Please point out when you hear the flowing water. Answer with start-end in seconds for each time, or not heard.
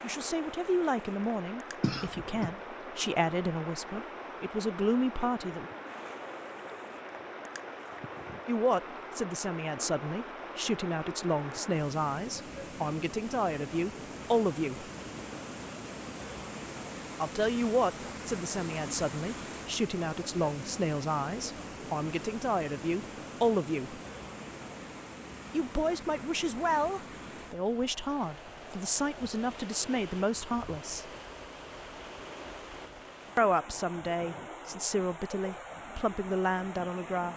0.0-37.3.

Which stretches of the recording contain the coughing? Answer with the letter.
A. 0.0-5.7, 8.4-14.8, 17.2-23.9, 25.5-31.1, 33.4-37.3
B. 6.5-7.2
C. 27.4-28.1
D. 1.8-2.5
D.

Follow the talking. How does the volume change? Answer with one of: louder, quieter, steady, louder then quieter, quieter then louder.
steady.